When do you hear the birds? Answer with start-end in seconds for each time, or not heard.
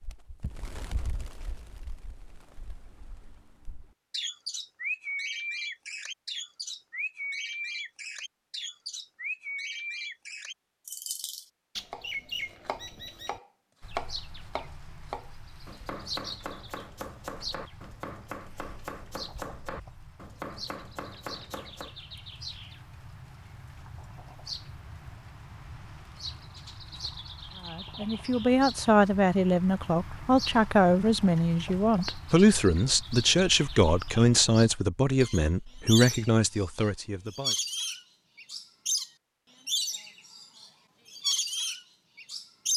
0.0-42.7.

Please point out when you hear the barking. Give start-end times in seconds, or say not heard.
not heard.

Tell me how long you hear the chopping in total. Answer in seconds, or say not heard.
10 s.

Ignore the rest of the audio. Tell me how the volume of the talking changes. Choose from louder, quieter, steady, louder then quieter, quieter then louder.
steady.